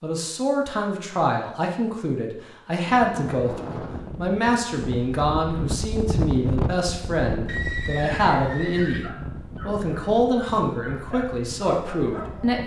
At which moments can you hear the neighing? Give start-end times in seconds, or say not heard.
7.5-9.2.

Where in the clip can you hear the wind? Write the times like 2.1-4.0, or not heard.
2.9-12.6.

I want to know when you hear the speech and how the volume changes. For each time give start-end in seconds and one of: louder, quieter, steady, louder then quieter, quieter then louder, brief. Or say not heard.
0.0-12.6 steady.